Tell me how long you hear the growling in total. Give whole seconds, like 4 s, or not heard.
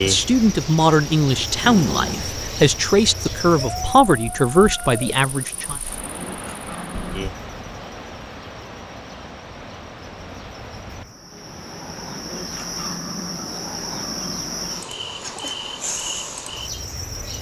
5 s.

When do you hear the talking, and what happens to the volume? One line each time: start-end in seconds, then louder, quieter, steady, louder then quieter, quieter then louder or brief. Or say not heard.
0.1-5.8 steady.